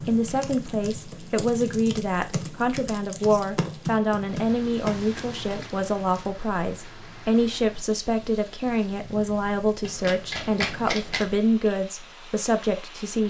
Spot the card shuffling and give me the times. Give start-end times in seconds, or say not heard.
9.8-11.3.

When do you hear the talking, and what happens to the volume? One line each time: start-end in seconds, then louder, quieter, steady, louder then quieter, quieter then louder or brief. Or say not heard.
0.0-13.2 steady.